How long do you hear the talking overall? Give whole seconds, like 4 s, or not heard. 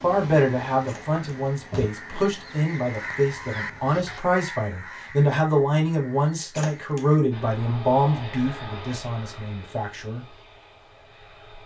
10 s.